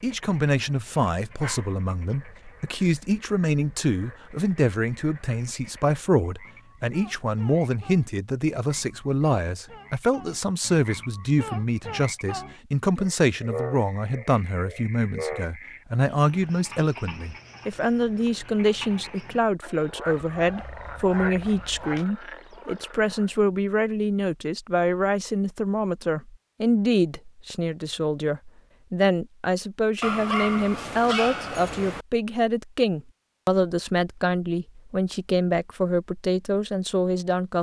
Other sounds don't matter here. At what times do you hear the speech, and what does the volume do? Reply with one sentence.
The speech can be heard from 0.0 to 37.5 s, at a steady volume.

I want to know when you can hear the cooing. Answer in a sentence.
The cooing can't be heard in this clip.